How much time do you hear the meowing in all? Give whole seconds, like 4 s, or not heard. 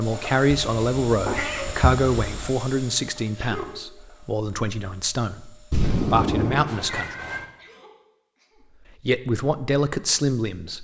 4 s.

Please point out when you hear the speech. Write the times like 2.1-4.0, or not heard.
0.0-7.2, 9.0-10.7.